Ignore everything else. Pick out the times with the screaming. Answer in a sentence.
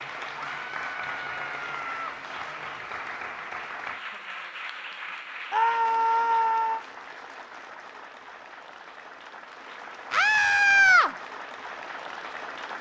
You can hear the screaming from 0.4 to 2.1 s, from 5.5 to 6.8 s and from 10.1 to 11.1 s.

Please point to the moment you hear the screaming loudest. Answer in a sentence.
The volume of the screaming peaks at 11 seconds.